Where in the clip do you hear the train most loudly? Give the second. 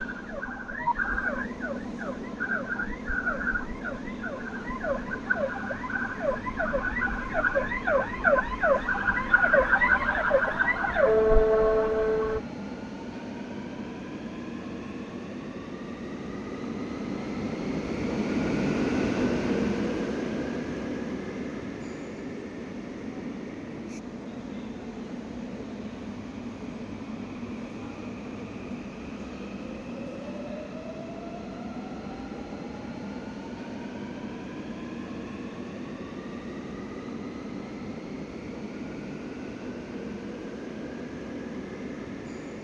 19 s.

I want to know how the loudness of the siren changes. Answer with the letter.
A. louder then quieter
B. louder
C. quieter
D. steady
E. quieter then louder
B.